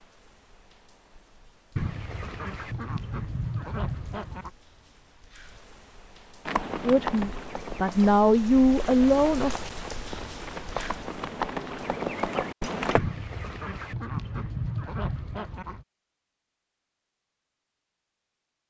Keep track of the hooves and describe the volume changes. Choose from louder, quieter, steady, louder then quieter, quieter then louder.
quieter then louder.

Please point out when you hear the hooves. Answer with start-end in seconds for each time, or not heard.
6.5-13.0.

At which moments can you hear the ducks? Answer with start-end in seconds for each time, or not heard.
1.8-4.5, 12.9-15.8.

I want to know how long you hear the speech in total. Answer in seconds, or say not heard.
3 s.